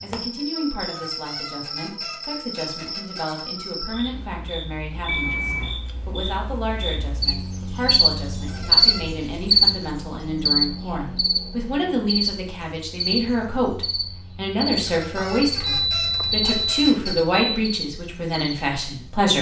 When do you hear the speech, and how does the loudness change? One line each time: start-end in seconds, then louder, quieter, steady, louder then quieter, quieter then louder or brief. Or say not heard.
0.0-19.3 louder.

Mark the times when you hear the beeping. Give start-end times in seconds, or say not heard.
5.0-5.8, 15.4-17.6.